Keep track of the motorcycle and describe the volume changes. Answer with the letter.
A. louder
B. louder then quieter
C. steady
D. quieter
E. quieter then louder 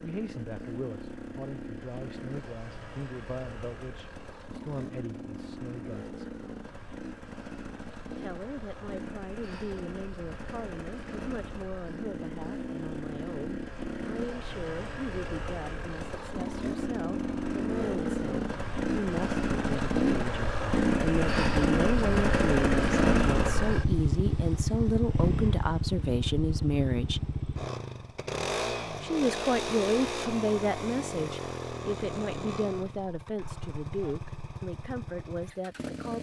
B.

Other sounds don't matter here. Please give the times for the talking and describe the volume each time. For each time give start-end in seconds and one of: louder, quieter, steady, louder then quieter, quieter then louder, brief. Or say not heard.
0.0-6.3 steady
8.2-27.2 louder
29.0-36.1 quieter.